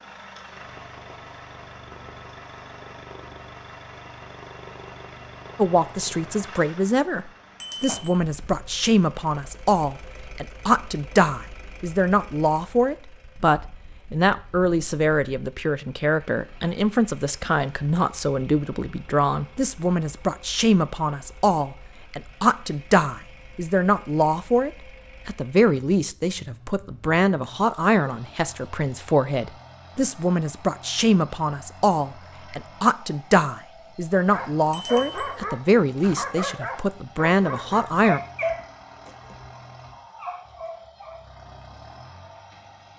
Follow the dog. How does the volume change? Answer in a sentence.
The volume of the dog goes down.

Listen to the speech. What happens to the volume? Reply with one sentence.
The volume of the speech stays about the same.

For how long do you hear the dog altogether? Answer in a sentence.
The dog can be heard for 7 seconds in total.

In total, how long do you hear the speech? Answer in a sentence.
The speech can be heard for 33 seconds in total.